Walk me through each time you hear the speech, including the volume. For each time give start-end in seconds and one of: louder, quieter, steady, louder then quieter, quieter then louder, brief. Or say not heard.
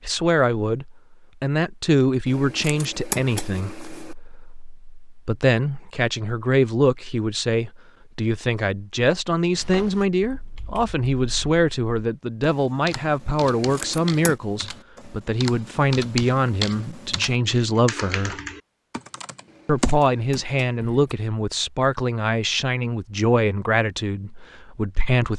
0.0-18.4 steady
19.6-25.3 quieter.